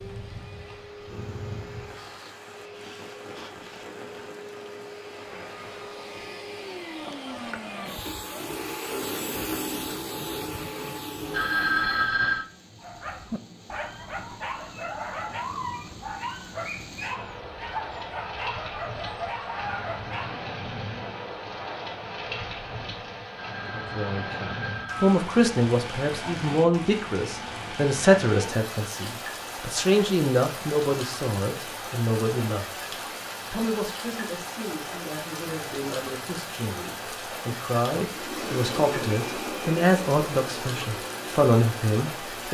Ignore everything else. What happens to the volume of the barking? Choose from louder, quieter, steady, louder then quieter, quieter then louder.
steady.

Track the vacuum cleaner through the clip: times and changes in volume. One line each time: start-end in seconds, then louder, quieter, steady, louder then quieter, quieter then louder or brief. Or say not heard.
0.0-12.0 louder
38.0-42.4 quieter.